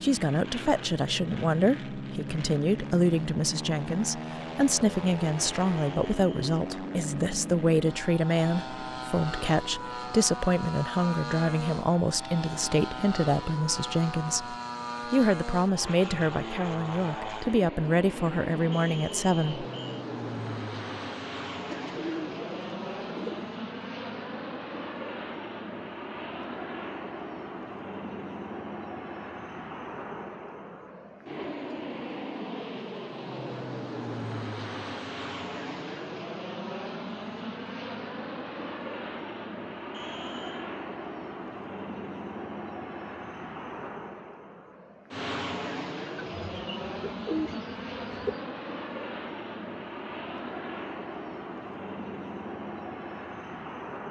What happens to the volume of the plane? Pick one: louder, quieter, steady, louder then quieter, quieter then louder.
steady.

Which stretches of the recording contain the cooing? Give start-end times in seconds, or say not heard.
21.6-23.5, 46.2-48.4.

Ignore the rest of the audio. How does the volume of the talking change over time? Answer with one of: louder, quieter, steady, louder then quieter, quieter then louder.
steady.